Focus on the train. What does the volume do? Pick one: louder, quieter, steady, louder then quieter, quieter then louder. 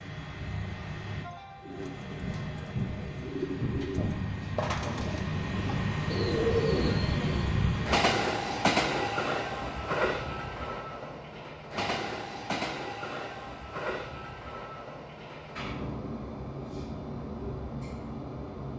louder then quieter.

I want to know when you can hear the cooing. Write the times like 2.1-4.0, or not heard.
1.6-7.5.